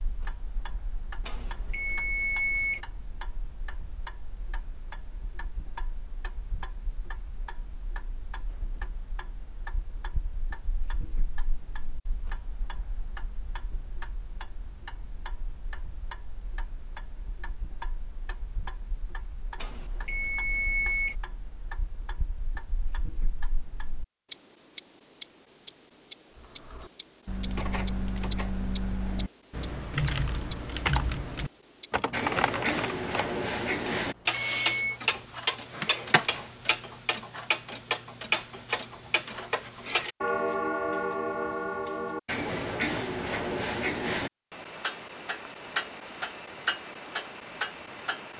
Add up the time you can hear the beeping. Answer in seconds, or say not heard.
4 s.